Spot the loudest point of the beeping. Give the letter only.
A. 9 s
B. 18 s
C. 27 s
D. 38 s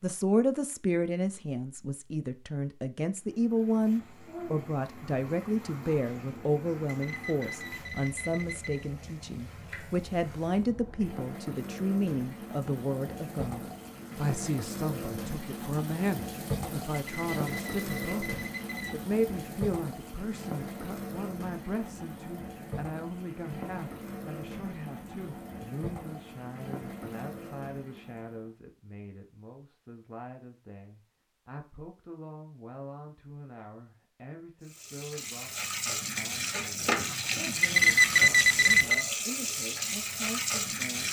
D.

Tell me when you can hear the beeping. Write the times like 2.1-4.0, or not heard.
6.8-8.8, 16.9-18.9, 37.6-39.0.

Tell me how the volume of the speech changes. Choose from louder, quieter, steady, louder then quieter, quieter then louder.
quieter.